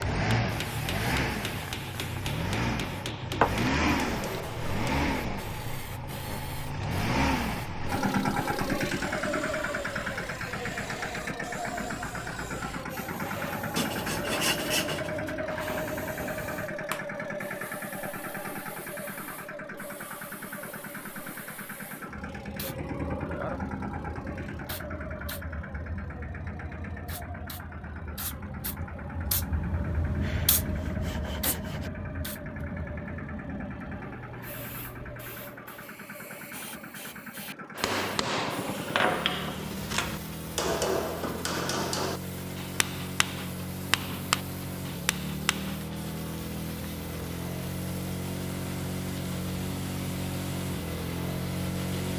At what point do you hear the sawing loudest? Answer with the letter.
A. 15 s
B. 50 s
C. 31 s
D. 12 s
A.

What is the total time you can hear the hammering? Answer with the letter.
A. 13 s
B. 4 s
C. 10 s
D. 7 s
A.